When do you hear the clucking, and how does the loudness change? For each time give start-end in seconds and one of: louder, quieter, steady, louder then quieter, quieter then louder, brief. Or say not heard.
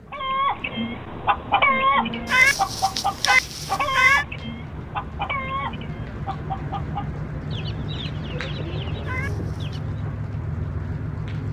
0.1-10.0 quieter.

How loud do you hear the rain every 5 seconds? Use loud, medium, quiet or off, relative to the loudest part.
medium, loud, loud.